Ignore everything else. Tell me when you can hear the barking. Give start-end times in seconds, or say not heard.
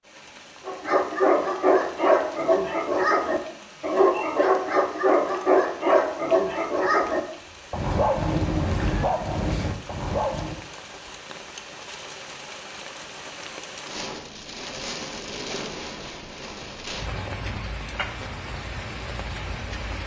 0.7-10.6.